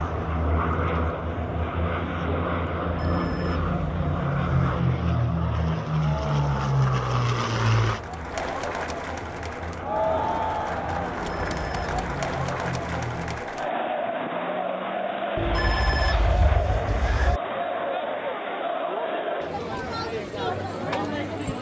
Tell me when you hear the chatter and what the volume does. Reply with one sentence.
You can hear the chatter from 0.0 to 21.5 s, getting louder.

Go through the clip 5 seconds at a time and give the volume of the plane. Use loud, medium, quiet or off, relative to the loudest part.
loud, loud, medium, off, off.